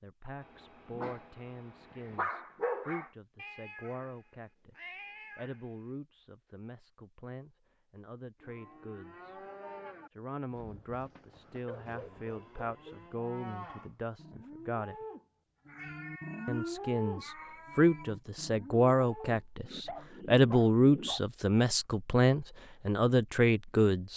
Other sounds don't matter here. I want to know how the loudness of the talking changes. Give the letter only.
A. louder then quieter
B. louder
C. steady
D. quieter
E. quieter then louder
B.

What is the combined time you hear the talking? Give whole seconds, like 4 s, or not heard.
22 s.